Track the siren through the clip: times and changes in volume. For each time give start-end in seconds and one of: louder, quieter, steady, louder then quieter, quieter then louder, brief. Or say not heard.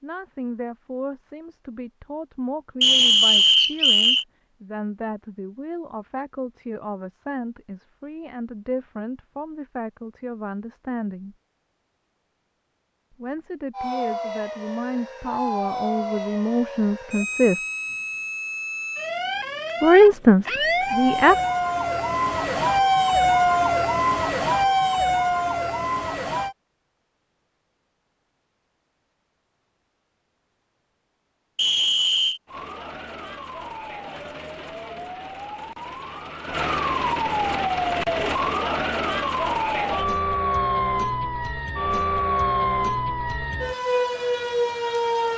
13.7-26.6 louder
32.5-45.3 louder.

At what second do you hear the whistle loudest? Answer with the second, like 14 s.
3 s.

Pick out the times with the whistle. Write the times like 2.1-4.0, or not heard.
2.8-4.2, 31.6-32.4.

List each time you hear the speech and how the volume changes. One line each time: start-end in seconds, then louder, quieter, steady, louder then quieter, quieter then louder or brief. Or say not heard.
0.0-11.3 steady
13.2-17.6 louder
19.8-21.4 brief.